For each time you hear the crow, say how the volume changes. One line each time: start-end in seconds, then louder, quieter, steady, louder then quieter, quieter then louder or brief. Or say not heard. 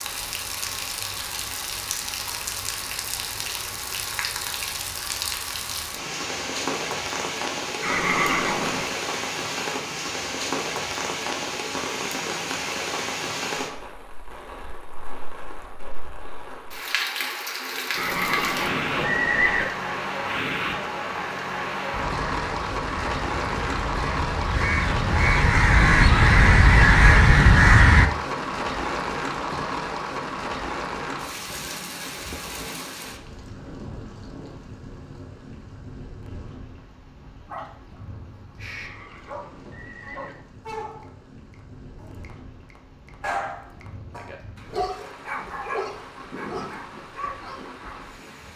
21.9-28.1 louder.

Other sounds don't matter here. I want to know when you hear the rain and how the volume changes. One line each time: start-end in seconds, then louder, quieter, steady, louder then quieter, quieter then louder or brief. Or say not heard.
0.0-48.5 quieter.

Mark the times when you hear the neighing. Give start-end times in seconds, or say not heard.
7.8-8.9, 17.9-19.6, 38.6-40.4.